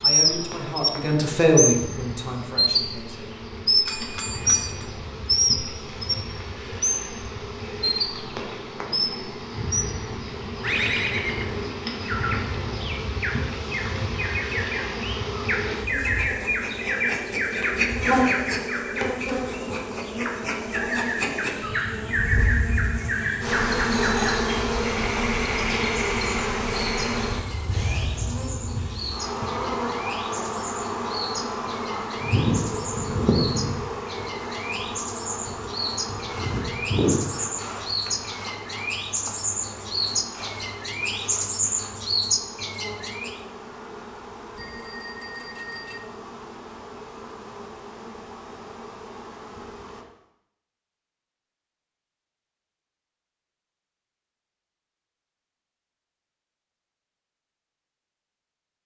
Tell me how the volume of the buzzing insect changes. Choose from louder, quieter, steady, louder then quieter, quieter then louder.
louder then quieter.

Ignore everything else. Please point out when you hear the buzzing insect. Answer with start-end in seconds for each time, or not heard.
0.0-50.0.